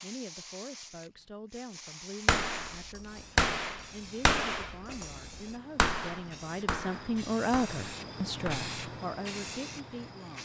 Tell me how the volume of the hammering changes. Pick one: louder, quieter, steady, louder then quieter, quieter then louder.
quieter.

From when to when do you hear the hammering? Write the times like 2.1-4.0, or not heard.
2.2-8.7.